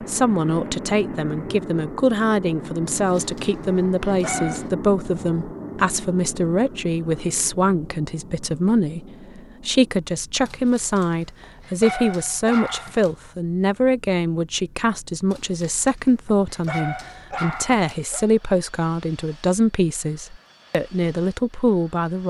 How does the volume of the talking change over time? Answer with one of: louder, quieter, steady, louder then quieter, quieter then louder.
steady.